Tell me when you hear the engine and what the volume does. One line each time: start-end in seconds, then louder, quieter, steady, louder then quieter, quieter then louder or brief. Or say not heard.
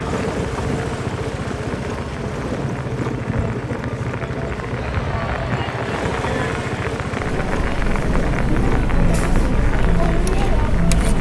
0.0-11.1 steady.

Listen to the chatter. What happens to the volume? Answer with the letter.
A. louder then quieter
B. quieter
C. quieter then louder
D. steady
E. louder
E.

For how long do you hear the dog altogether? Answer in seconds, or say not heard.
not heard.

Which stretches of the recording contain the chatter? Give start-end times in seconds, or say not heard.
4.8-11.1.